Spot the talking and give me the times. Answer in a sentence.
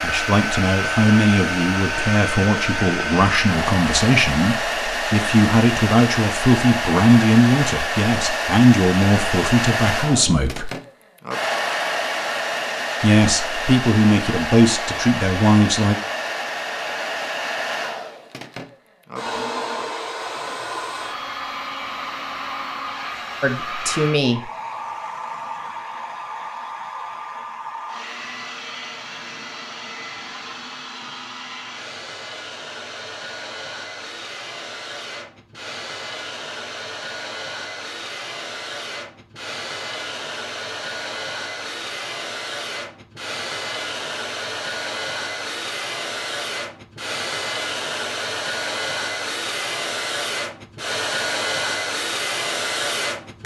You can hear the talking from 0.0 to 10.7 s, from 13.0 to 15.9 s and from 23.4 to 24.4 s.